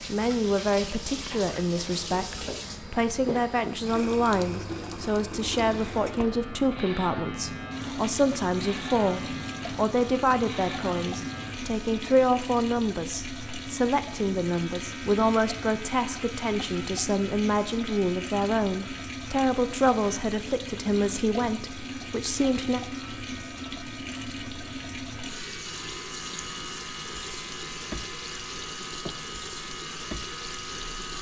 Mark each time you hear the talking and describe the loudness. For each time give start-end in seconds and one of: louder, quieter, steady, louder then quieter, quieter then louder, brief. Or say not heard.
0.0-22.8 steady.